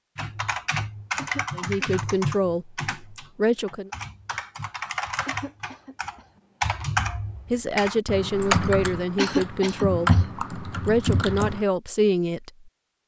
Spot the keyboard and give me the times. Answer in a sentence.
The keyboard can be heard from 0.1 to 11.7 s.